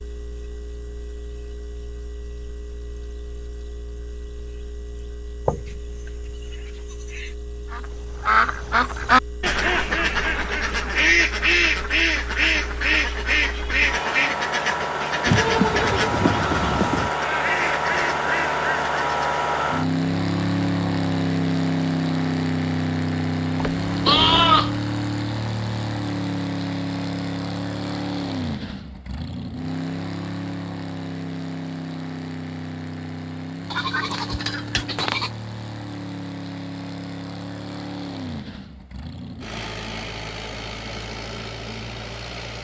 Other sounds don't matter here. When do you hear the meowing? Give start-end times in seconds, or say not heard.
not heard.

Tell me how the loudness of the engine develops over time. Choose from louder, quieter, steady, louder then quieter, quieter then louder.
louder then quieter.